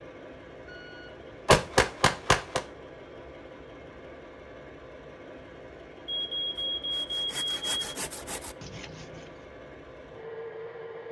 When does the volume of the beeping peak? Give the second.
2 s.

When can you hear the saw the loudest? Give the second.
8 s.